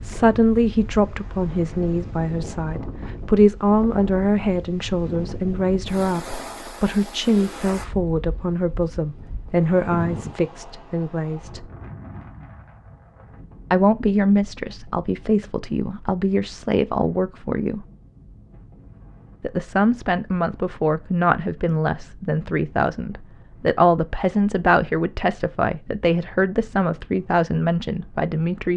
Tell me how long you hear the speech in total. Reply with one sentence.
You can hear the speech for 25 seconds altogether.